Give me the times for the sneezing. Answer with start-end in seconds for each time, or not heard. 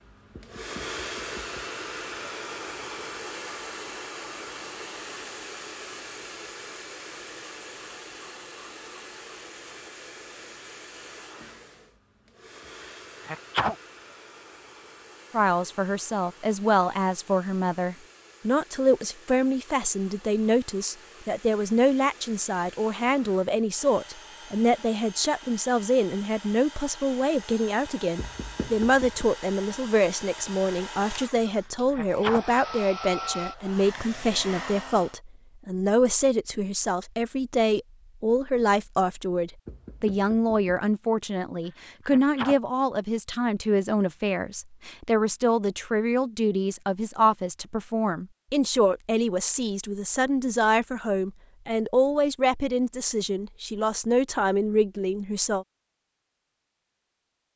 13.2-13.8, 31.9-32.5, 42.0-42.6.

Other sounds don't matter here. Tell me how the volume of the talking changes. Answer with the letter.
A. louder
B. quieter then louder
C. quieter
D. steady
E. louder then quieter
D.